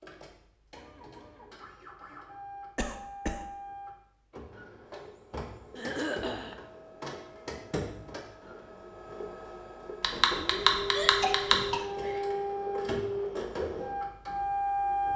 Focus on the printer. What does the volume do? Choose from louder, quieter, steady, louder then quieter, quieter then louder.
louder.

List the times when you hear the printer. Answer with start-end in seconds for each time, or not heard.
0.0-15.1.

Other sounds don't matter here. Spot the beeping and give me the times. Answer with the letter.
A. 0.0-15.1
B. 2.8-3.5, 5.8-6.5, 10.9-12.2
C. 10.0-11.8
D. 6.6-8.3
C.